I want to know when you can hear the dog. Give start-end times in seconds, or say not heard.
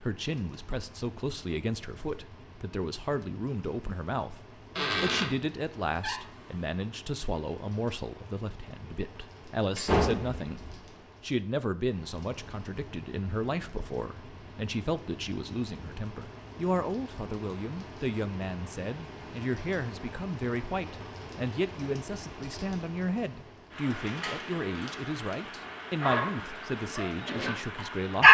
26.0-28.3.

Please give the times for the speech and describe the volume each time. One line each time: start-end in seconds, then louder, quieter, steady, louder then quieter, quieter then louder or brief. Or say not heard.
0.0-28.3 steady.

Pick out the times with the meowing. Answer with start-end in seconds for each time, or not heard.
not heard.